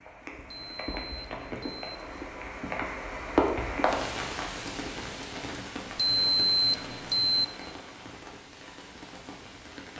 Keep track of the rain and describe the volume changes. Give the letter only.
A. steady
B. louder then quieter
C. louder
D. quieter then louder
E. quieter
B.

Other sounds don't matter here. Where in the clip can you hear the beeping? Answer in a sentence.
You can hear the beeping from 0.5 to 2.0 s and from 6.0 to 7.5 s.